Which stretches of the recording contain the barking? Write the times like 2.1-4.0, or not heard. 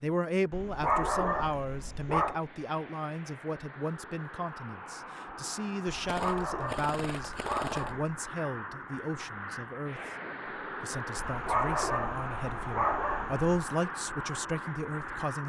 0.5-2.4, 6.0-8.1, 11.2-13.4.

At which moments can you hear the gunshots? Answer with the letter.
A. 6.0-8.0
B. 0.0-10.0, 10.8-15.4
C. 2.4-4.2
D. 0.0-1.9
A.